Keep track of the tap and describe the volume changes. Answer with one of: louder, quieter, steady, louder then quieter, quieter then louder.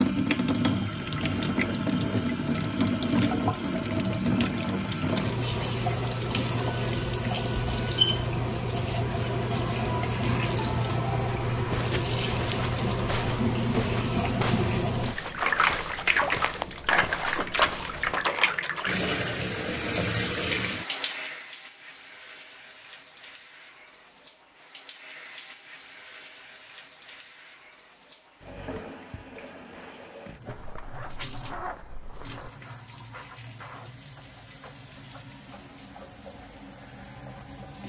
quieter.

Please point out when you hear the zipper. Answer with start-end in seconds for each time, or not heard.
30.4-32.5.